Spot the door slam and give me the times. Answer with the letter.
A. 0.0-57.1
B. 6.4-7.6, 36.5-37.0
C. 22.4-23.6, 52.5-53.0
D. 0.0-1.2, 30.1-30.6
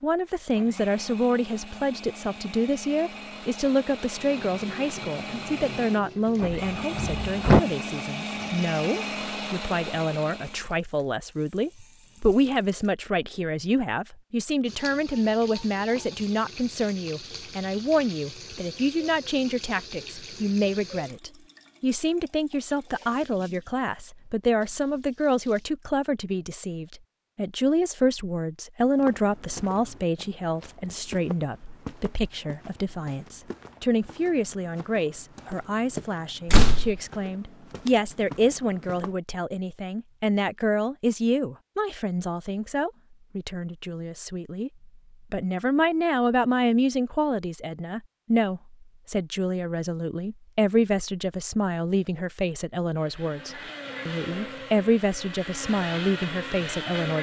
B.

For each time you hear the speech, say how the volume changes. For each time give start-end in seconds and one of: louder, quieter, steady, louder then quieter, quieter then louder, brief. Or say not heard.
0.0-57.1 steady.